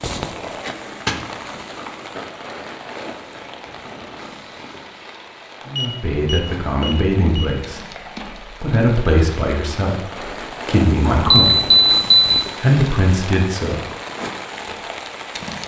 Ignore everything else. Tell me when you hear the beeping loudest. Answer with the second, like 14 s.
12 s.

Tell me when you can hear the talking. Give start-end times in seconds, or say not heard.
5.7-7.8, 8.6-11.8, 12.6-13.8.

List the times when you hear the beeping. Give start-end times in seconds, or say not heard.
5.8-7.5, 11.1-12.3.